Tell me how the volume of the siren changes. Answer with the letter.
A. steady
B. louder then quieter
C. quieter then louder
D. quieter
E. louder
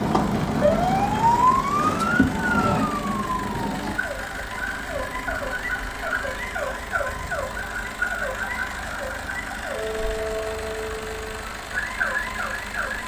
D.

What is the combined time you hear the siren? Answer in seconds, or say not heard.
13 s.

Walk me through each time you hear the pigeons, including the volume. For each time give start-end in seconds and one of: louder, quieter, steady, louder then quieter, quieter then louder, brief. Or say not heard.
not heard.